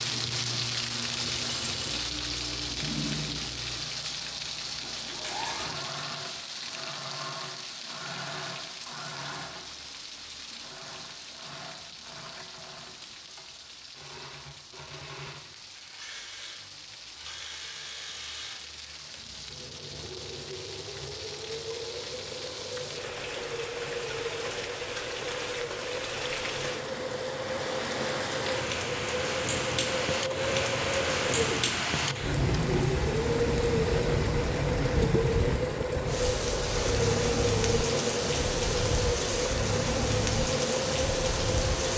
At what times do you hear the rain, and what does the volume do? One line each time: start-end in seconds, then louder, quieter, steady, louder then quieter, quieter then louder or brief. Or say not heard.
0.0-41.9 quieter then louder.